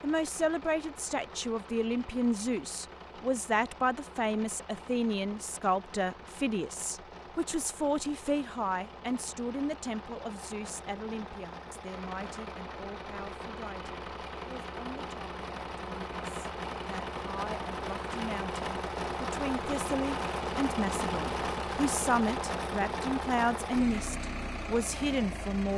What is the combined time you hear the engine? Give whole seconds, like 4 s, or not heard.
26 s.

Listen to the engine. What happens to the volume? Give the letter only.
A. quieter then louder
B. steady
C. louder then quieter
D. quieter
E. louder
E.